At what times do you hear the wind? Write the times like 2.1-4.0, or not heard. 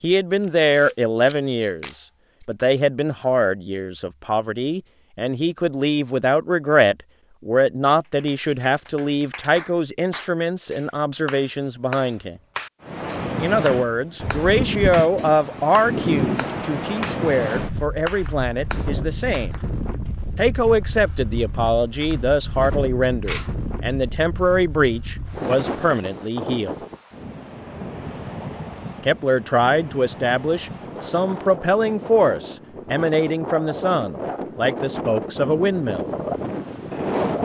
12.8-37.3.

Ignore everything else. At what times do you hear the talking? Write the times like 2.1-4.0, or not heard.
0.0-12.3, 13.3-19.5, 20.4-26.8, 29.1-36.1.